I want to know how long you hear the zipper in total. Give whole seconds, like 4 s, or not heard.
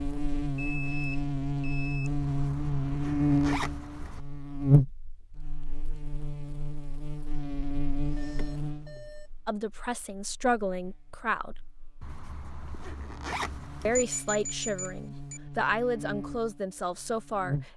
4 s.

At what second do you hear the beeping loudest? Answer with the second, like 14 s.
14 s.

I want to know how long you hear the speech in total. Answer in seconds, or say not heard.
6 s.